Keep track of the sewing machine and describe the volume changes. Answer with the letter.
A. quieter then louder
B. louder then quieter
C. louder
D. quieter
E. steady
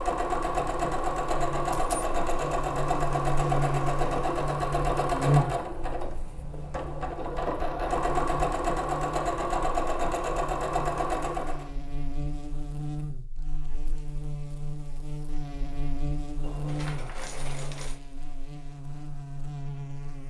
E.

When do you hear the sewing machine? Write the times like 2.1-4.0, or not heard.
0.0-11.7.